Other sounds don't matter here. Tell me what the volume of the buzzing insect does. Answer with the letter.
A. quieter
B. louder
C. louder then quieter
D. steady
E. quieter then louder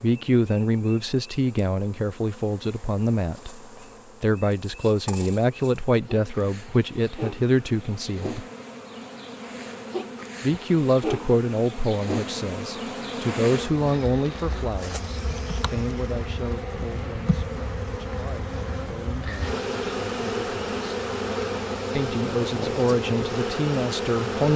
B.